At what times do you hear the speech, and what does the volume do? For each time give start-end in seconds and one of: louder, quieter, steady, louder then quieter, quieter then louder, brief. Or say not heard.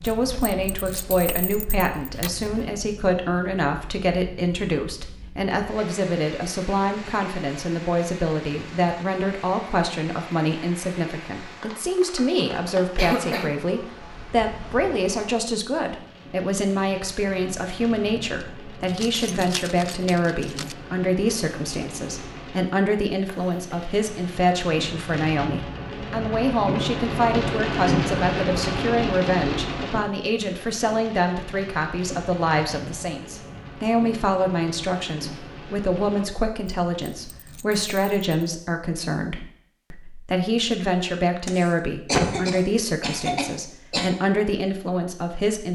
0.0-45.6 steady.